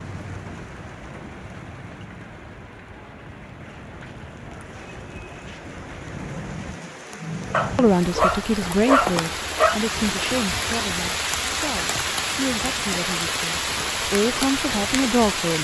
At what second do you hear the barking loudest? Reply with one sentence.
The volume of the barking peaks at 9 seconds.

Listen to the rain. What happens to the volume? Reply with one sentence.
The volume of the rain goes up.